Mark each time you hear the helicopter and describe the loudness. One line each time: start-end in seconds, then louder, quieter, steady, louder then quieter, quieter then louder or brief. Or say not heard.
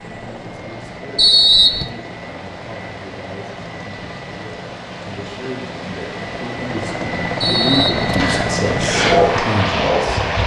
0.0-10.4 louder.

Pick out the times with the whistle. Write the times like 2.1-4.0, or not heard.
1.1-1.9, 7.4-8.5.